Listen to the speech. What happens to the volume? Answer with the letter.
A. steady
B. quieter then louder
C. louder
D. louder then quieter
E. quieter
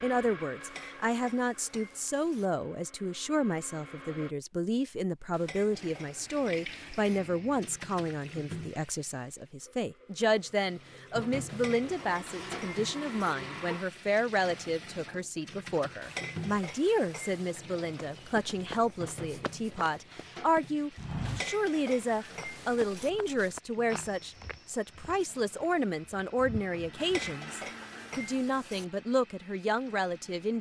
A.